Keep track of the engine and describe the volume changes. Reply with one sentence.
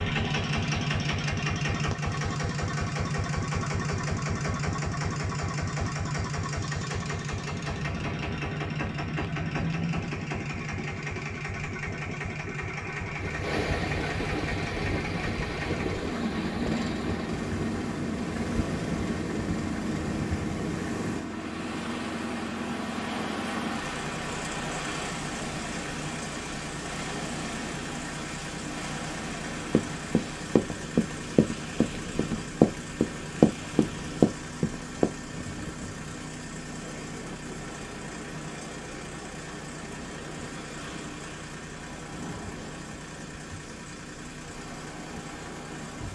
The volume of the engine goes down.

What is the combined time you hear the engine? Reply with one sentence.
You can hear the engine for 46 seconds altogether.